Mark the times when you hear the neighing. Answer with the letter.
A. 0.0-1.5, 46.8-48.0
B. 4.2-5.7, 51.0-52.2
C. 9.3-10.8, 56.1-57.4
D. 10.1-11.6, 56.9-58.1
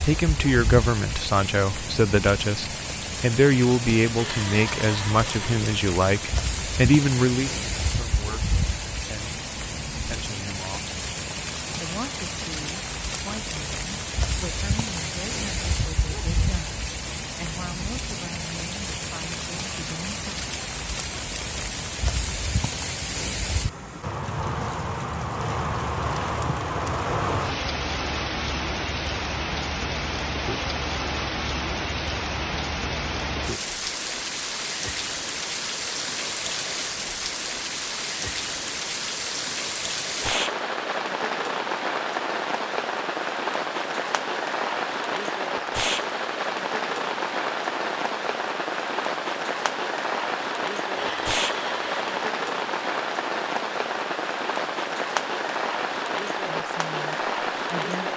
B.